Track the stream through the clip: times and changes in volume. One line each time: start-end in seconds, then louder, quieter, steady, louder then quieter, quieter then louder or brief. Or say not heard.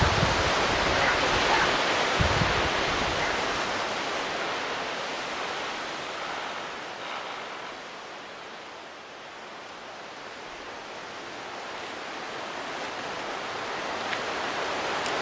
0.0-15.1 quieter then louder.